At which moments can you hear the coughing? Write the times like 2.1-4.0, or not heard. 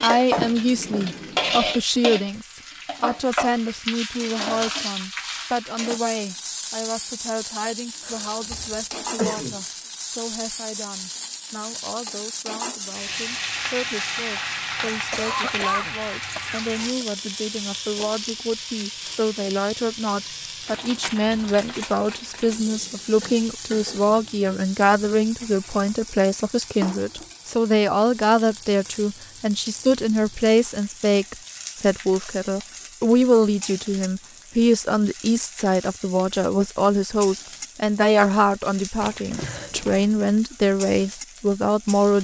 8.1-9.6, 14.8-17.1, 39.0-40.0.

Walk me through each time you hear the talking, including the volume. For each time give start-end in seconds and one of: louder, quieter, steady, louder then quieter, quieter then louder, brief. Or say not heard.
0.0-42.1 quieter then louder.